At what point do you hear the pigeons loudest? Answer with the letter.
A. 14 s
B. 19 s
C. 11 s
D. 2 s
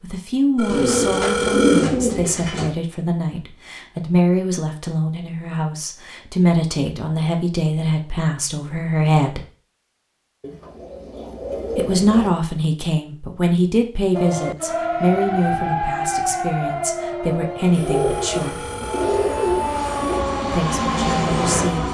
D.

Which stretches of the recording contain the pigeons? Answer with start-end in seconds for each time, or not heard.
0.7-2.7, 10.4-12.3, 17.7-20.2.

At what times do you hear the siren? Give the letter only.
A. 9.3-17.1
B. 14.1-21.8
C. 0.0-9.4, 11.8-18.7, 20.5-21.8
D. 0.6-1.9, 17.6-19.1
B.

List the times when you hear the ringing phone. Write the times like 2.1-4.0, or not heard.
0.6-1.9, 17.6-19.1.